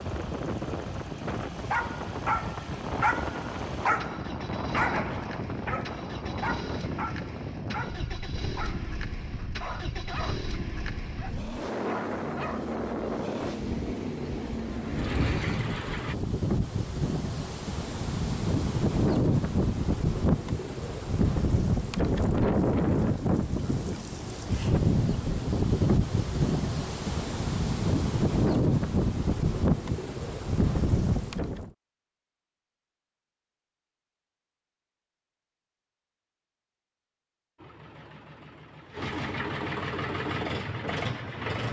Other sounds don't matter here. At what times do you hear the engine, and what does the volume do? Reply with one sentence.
The engine can be heard from 0.0 to 16.1 s, getting louder; and from 37.5 to 41.6 s, getting louder.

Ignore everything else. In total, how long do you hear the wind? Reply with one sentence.
You can hear the wind for 32 seconds altogether.